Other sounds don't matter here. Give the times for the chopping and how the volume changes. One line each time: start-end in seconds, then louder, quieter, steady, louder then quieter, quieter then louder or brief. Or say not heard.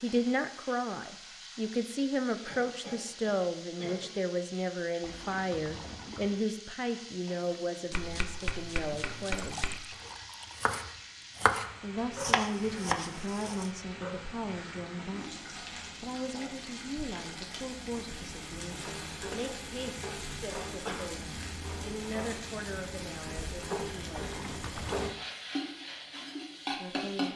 7.9-13.7 louder.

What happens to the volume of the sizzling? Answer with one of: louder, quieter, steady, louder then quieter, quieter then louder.
louder.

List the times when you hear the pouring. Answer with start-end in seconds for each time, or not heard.
5.0-6.3, 9.3-10.7, 24.1-25.1.